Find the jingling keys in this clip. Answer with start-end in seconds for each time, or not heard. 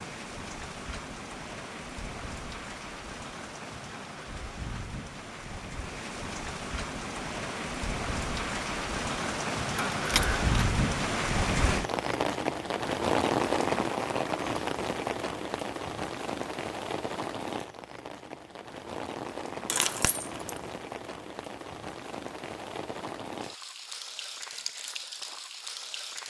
9.8-10.6, 19.6-20.7.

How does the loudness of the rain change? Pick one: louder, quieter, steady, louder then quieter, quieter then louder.
louder then quieter.